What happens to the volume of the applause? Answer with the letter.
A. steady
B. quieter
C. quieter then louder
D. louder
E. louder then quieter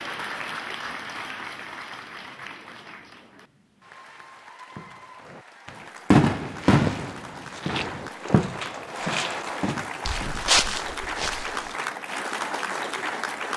C.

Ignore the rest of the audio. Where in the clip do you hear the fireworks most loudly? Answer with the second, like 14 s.
6 s.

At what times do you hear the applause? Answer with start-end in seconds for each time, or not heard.
0.0-13.5.